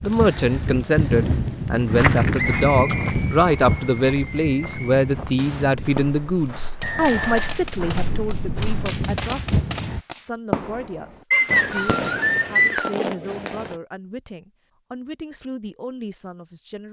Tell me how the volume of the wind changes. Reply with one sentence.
The volume of the wind goes down, then up.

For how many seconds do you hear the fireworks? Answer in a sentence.
You can hear the fireworks for 11 seconds altogether.